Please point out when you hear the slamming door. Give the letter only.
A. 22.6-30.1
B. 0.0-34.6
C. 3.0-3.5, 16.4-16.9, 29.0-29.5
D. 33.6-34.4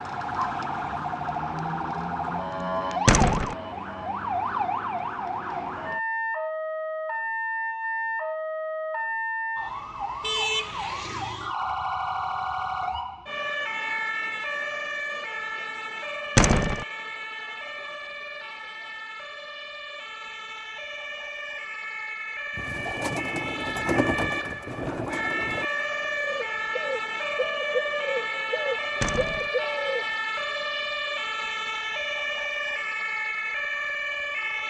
C.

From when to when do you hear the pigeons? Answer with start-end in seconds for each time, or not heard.
22.6-30.1.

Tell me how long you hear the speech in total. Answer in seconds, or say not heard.
not heard.